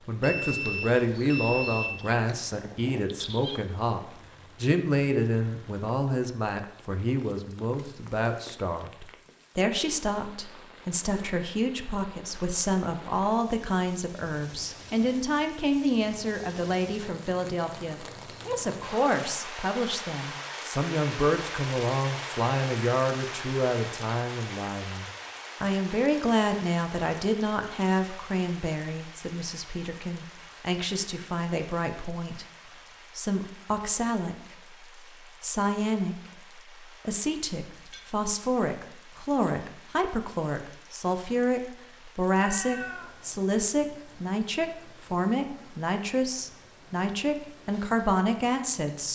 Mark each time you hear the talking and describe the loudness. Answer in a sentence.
You can hear the talking from 0.1 to 32.5 s, at a steady volume; and from 33.1 to 49.0 s, at a steady volume.